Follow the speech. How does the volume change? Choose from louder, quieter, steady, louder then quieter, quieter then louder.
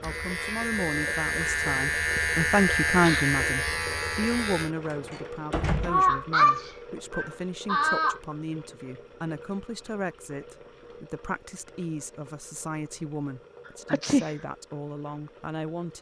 quieter.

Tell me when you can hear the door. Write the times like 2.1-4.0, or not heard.
4.8-6.2.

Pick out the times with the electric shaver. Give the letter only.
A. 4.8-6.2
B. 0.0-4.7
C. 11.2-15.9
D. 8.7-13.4
B.